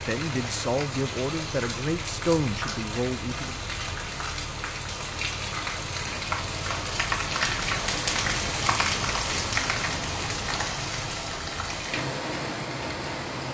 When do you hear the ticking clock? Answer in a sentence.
The ticking clock can't be heard in this clip.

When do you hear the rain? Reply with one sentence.
You can hear the rain from 0.0 to 13.4 s.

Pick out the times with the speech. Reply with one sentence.
The speech can be heard from 0.0 to 3.5 s.